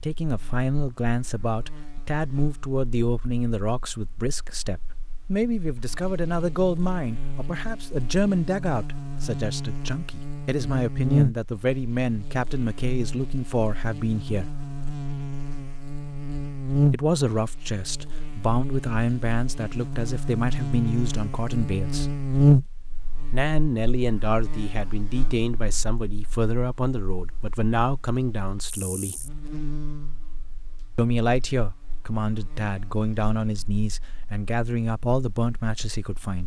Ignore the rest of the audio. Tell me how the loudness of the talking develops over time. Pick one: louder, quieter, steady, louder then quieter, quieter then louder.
steady.